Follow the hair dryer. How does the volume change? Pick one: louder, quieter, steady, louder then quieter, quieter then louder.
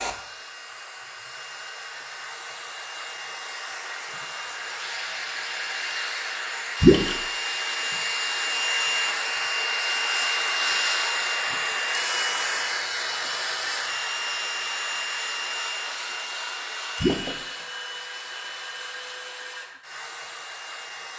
louder then quieter.